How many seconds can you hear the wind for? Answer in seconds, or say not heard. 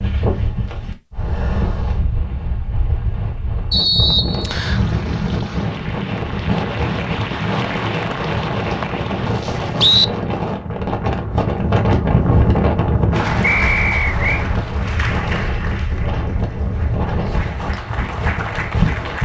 19 s.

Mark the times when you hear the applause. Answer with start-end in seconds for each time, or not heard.
4.6-10.0, 13.1-19.1.